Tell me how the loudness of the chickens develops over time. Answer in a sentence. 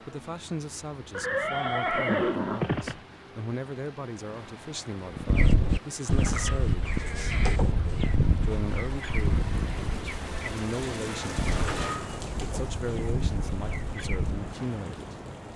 The volume of the chickens goes down.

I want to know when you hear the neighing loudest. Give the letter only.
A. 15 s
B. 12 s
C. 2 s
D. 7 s
C.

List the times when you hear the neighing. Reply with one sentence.
The neighing can be heard from 1.1 to 3.0 s, from 6.0 to 7.6 s and from 11.4 to 12.2 s.